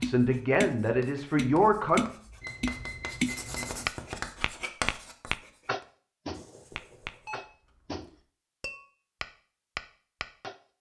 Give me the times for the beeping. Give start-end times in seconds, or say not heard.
2.4-3.8, 7.0-8.2.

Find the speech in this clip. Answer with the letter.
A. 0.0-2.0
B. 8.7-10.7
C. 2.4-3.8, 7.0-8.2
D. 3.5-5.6
A.